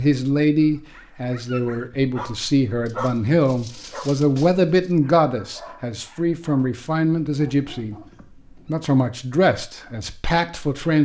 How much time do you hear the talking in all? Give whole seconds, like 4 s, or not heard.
10 s.